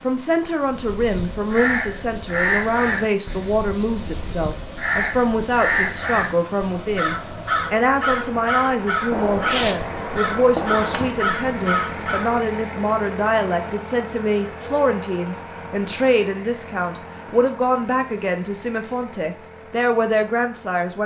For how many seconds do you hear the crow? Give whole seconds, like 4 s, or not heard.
12 s.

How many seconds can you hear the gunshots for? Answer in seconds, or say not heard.
2 s.